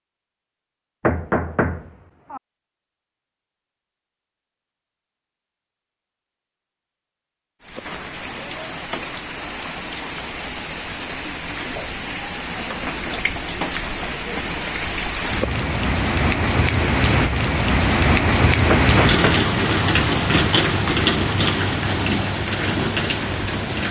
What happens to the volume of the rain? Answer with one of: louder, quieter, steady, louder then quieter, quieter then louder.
louder.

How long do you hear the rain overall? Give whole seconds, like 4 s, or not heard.
16 s.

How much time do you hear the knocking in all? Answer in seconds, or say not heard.
2 s.